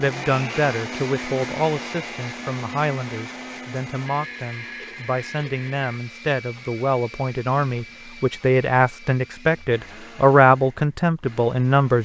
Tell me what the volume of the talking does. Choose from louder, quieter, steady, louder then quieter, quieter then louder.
louder.